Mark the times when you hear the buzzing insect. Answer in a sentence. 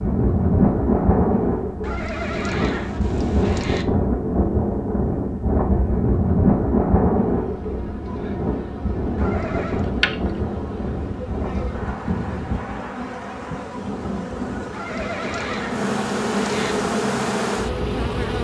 The buzzing insect can be heard from 7.2 to 18.3 s.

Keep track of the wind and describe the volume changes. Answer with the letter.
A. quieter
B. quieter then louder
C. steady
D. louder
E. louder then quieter
A.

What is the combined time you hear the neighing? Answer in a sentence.
You can hear the neighing for 5 seconds altogether.